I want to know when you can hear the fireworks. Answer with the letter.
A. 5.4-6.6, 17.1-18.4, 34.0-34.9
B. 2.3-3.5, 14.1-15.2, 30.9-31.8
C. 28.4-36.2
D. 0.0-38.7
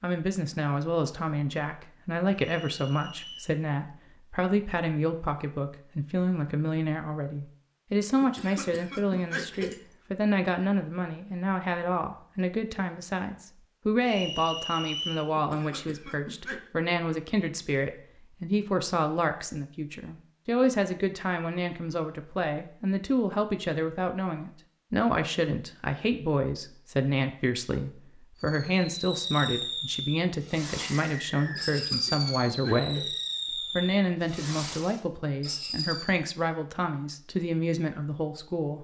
C.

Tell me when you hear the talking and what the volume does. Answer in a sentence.
You can hear the talking from 0.0 to 38.7 s, at a steady volume.